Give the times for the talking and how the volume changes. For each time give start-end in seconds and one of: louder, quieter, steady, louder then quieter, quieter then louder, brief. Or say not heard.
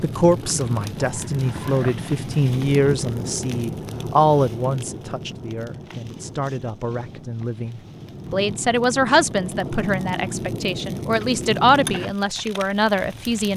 0.0-13.5 quieter then louder.